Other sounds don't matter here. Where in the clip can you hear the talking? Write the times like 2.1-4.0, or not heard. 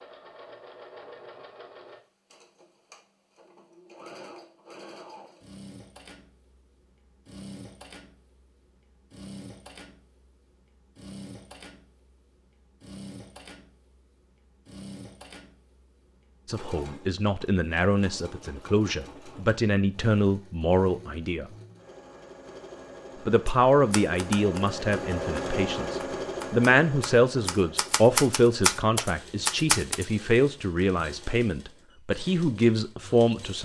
16.4-21.5, 23.2-33.6.